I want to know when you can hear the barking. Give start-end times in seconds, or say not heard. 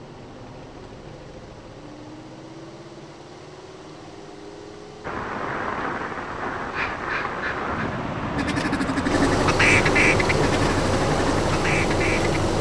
not heard.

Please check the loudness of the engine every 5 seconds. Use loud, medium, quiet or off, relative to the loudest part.
quiet, medium, loud.